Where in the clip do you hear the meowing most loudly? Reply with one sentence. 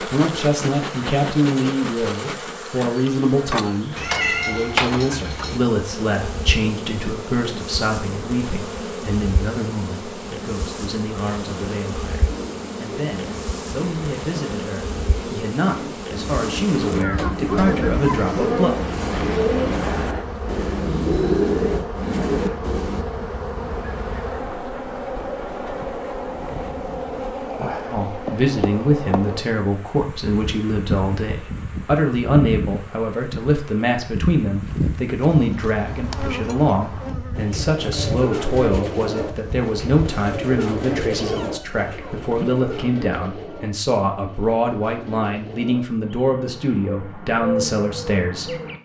The loudest moment of the meowing is at 4 seconds.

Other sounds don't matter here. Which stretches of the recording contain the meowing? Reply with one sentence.
You can hear the meowing from 4.0 to 5.6 s and from 41.1 to 42.5 s.